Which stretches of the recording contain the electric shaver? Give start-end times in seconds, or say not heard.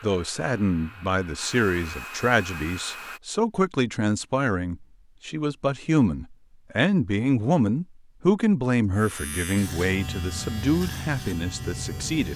8.9-12.3.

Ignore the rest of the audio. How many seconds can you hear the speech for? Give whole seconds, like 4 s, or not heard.
12 s.